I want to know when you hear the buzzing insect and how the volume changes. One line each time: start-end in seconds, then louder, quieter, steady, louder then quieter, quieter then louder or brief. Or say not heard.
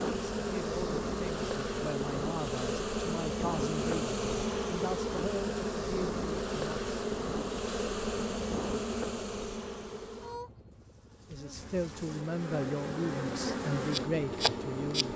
0.0-15.1 quieter then louder.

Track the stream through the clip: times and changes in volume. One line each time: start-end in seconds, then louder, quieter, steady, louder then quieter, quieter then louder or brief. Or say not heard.
not heard.